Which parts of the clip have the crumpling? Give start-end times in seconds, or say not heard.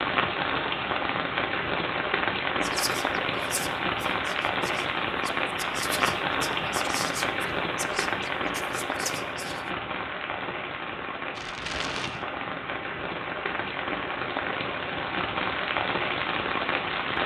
11.3-12.2.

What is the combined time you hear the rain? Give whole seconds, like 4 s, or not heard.
17 s.